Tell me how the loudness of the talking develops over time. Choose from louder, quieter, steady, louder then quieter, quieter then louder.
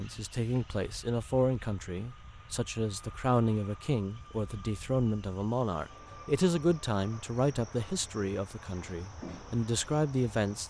steady.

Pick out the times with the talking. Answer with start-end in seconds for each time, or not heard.
0.0-10.6.